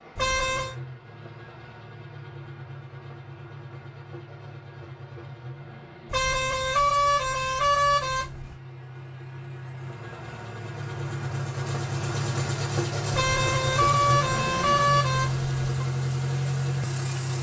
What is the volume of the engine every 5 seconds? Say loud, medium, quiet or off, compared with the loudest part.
quiet, quiet, loud, loud.